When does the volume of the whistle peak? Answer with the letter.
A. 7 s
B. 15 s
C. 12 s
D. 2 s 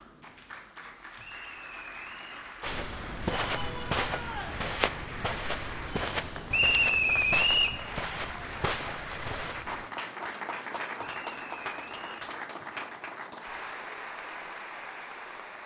A.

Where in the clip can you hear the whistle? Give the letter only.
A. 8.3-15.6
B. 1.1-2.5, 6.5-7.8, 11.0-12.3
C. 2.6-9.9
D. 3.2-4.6
B.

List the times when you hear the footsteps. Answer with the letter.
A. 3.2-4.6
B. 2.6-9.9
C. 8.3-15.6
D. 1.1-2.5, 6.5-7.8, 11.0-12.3
B.